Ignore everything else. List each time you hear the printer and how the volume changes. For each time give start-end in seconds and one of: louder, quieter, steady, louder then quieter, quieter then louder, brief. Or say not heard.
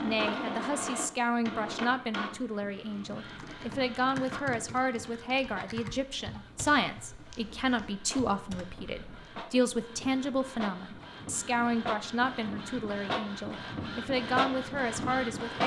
0.0-15.6 quieter then louder.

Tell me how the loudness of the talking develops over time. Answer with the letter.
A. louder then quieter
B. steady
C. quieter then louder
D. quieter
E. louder
B.